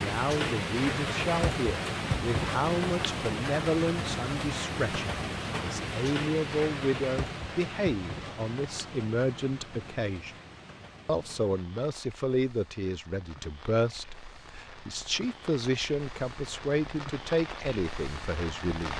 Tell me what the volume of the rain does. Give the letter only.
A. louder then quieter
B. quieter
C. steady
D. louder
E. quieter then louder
E.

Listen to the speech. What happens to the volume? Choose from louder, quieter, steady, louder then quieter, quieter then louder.
steady.